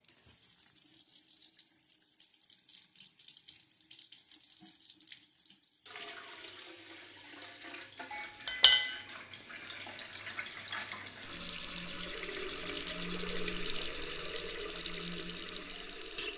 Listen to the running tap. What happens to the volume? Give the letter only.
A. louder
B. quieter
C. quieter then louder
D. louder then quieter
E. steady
A.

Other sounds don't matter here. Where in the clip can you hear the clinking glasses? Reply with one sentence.
You can hear the clinking glasses from 8.1 to 9.0 s.